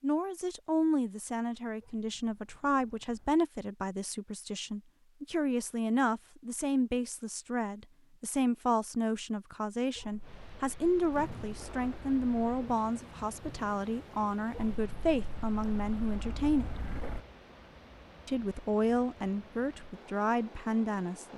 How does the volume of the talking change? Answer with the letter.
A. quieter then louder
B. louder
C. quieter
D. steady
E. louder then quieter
D.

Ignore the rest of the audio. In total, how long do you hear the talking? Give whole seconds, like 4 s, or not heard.
20 s.